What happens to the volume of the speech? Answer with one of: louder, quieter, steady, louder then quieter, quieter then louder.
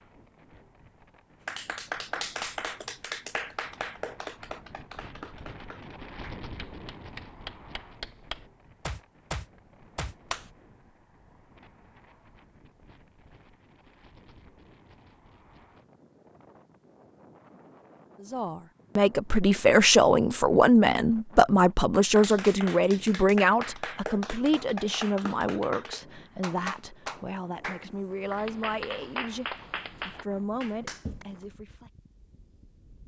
quieter.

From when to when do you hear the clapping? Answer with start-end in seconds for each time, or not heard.
1.4-10.5, 22.1-31.2.